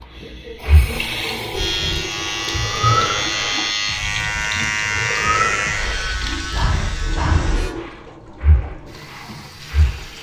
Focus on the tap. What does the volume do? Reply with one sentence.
The volume of the tap goes down.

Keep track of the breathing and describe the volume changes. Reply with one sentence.
The volume of the breathing goes up, then down.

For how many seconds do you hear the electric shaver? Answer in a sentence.
The electric shaver can be heard for 6 seconds in total.